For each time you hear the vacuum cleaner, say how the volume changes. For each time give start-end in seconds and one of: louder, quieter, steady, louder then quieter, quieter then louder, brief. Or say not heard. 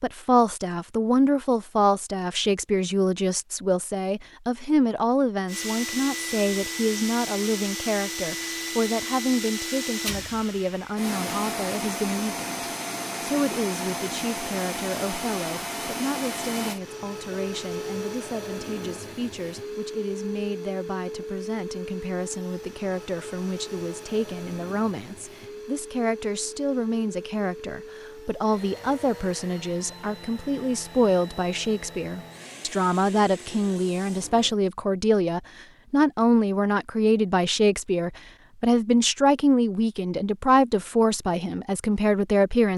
5.5-34.6 quieter.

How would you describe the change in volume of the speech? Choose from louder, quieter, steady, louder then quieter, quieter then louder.
quieter then louder.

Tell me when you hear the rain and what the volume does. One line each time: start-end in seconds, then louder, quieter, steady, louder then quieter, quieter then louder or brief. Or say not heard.
not heard.